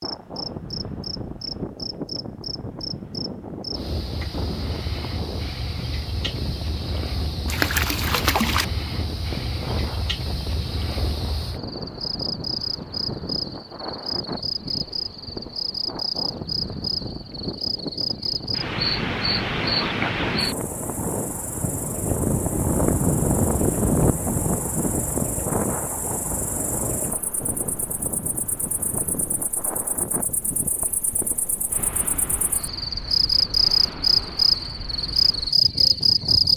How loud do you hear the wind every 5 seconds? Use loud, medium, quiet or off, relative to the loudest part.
medium, medium, medium, medium, loud, medium, quiet, quiet.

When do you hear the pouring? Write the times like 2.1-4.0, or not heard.
7.5-8.7.